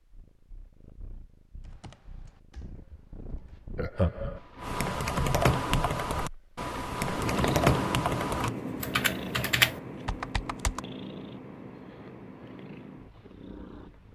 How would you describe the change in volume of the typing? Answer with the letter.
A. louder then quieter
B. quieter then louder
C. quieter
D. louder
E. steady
D.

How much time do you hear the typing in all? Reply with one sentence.
You can hear the typing for 9 seconds altogether.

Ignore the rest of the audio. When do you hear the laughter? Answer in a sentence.
You can hear the laughter from 3.8 to 4.4 s.